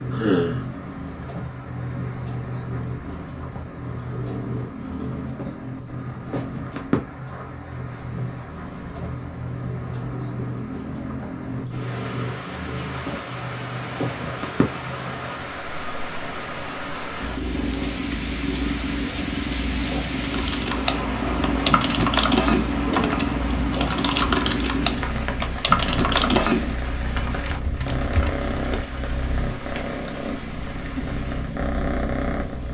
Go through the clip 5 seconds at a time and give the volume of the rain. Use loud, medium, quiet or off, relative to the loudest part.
medium, medium, loud, loud, loud, loud, medium.